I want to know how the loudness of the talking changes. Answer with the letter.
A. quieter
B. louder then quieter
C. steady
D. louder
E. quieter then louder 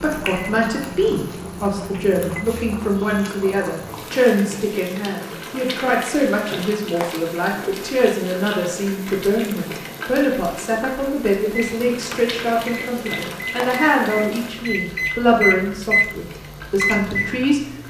C.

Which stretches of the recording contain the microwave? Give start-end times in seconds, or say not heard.
0.0-2.2, 11.5-17.8.